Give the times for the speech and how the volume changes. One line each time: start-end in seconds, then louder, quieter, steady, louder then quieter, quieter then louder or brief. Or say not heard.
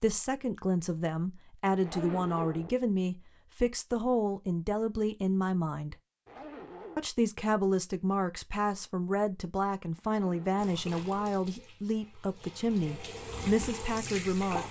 0.0-6.0 steady
7.0-14.6 steady.